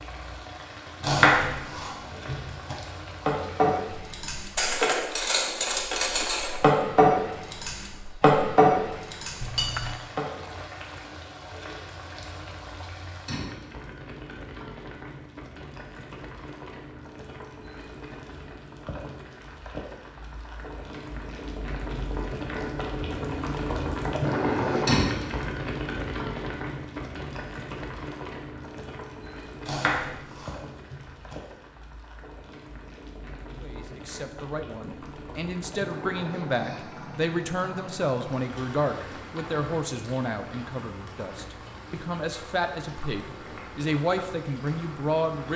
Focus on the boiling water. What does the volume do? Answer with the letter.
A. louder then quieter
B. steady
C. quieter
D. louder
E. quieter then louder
A.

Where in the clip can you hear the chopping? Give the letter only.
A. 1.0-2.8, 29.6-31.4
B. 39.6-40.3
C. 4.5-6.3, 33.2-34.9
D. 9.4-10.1
A.